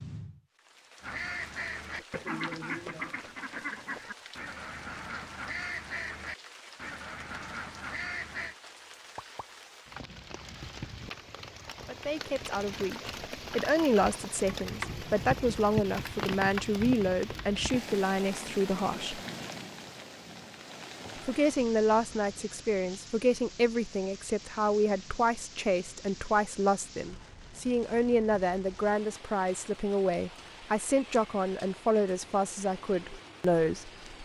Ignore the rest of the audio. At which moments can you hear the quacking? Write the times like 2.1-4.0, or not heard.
1.0-8.6.